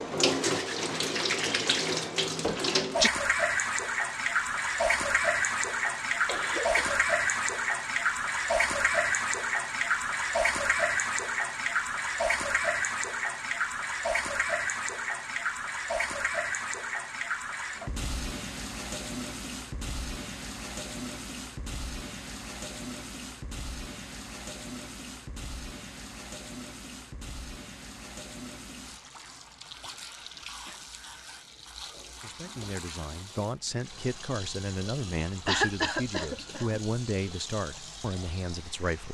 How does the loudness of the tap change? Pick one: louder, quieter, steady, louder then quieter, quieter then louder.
quieter.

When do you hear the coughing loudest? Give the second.
36 s.